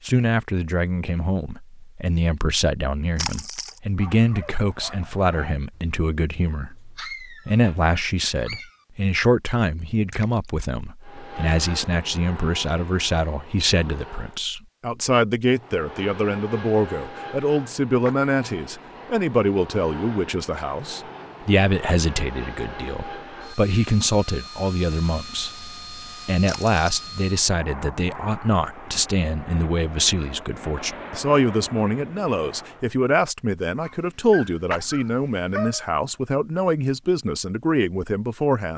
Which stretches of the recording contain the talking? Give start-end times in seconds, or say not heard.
0.1-38.7.